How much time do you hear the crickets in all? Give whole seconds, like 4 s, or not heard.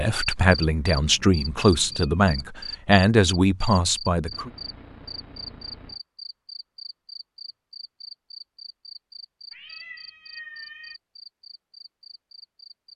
13 s.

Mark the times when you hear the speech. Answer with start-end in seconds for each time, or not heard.
0.0-4.5.